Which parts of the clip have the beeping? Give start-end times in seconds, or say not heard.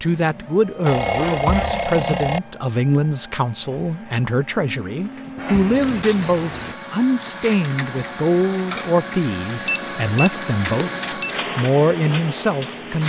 0.8-2.4, 5.5-6.8, 9.7-11.3.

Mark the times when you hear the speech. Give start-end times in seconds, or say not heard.
0.0-13.0.